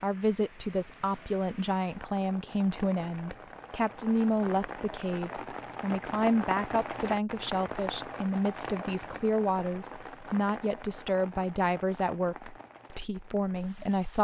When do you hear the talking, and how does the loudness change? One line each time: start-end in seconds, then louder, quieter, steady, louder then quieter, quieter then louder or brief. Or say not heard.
0.0-14.1 steady.